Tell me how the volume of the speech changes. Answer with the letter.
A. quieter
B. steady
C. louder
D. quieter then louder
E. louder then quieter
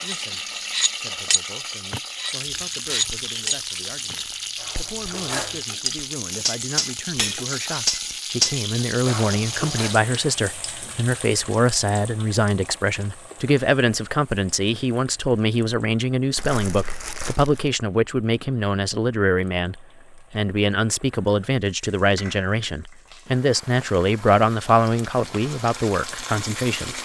C.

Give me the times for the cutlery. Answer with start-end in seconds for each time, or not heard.
0.0-9.9.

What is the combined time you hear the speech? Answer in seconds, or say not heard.
27 s.